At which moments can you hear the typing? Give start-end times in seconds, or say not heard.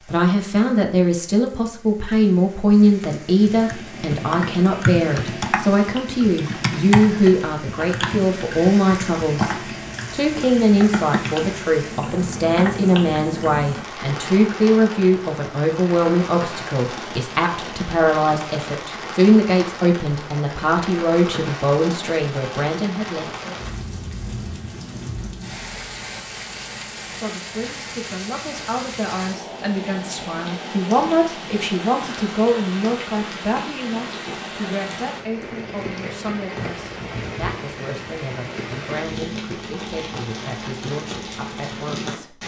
3.5-13.7.